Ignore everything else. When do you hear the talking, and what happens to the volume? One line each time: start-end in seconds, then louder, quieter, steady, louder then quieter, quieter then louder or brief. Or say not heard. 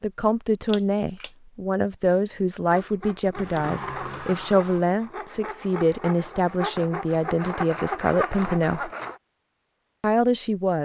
0.0-8.9 steady
10.0-10.8 brief.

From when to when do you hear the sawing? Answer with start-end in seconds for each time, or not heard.
2.7-9.2.